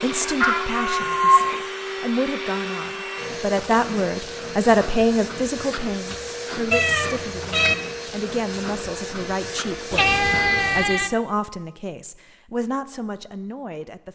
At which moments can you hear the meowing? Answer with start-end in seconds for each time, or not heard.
0.2-1.5, 6.7-7.8, 9.9-11.1.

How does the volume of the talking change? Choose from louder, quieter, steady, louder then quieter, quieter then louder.
louder then quieter.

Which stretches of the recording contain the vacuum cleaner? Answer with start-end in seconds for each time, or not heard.
0.0-10.9.